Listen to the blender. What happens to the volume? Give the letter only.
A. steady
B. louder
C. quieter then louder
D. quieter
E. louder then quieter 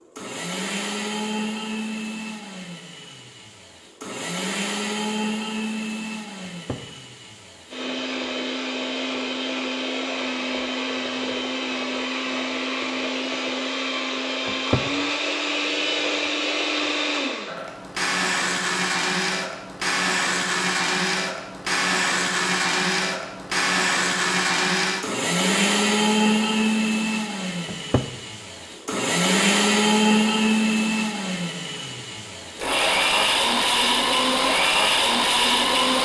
B.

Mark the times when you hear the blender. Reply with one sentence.
The blender can be heard from 0.0 to 36.0 s.